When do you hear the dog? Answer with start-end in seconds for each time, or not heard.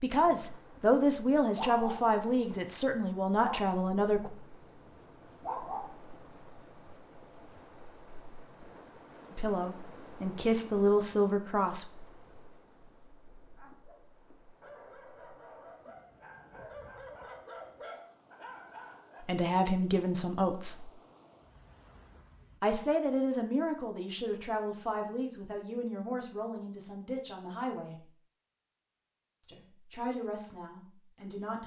0.2-0.9, 1.6-2.6, 3.4-6.0, 13.6-19.2.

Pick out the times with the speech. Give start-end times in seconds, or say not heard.
0.0-4.3, 9.3-11.8, 19.2-20.9, 22.6-28.1, 29.4-31.6.